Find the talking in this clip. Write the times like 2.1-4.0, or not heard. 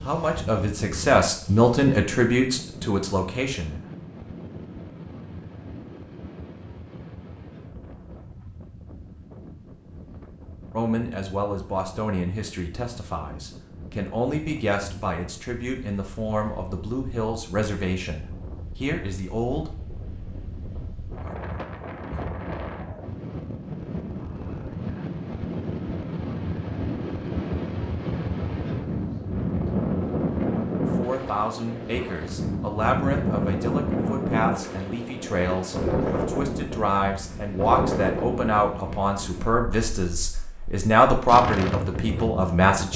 0.0-3.8, 10.8-19.8, 30.8-42.9.